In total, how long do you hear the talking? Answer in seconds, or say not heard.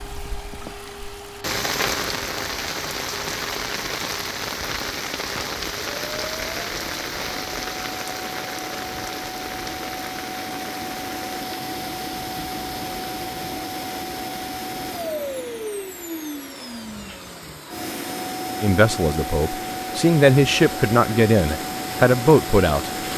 4 s.